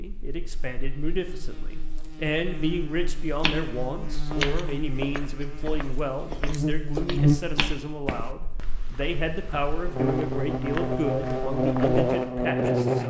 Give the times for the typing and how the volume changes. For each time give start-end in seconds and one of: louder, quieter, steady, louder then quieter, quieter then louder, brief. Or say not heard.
not heard.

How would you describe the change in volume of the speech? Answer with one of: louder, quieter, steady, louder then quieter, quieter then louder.
steady.